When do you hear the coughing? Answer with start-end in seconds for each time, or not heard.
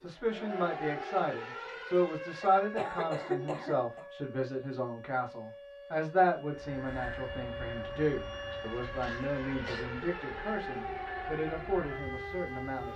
2.4-4.0, 8.5-9.8.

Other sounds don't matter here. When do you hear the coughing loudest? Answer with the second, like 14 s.
3 s.